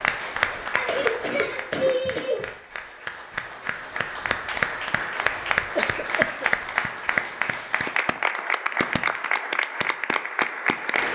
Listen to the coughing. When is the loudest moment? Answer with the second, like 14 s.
2 s.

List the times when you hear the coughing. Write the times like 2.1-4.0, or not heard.
0.8-2.5, 5.8-6.5.